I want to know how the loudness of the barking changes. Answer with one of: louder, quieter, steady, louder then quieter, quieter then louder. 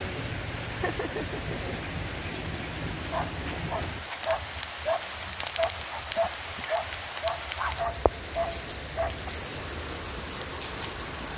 steady.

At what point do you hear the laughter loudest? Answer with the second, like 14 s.
1 s.